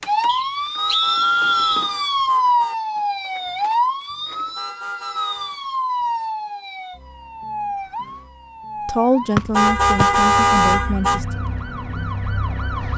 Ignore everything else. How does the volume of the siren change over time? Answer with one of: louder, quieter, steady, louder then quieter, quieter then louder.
quieter.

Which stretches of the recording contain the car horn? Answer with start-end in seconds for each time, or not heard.
0.8-2.8, 4.5-5.6, 9.5-11.2.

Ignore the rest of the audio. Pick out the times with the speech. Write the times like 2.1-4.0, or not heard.
8.8-11.4.